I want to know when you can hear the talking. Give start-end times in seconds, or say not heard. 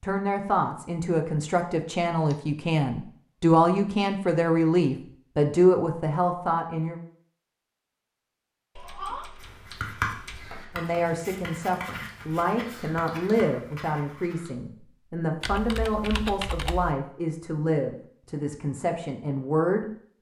0.0-7.0, 10.8-20.1.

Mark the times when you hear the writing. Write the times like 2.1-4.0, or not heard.
9.4-14.5.